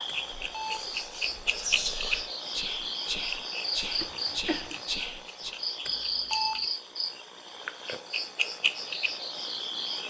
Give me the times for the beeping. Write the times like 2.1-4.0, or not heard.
0.1-0.9, 5.8-6.7.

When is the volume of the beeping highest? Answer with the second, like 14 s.
6 s.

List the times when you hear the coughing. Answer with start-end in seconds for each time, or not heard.
4.0-4.8.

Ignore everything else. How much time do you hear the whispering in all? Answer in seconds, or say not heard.
5 s.